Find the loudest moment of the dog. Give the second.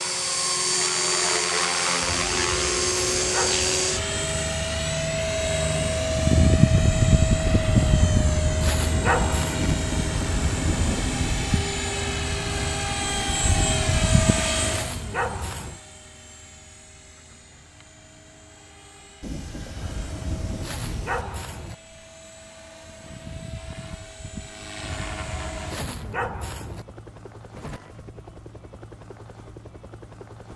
9 s.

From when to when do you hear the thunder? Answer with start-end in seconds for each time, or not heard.
9.6-11.6, 19.2-21.2.